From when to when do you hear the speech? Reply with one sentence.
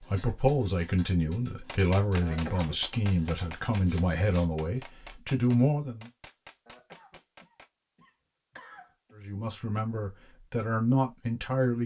The speech can be heard from 0.0 to 6.1 s and from 9.2 to 11.8 s.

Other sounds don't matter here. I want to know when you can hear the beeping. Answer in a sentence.
The beeping can't be heard in this clip.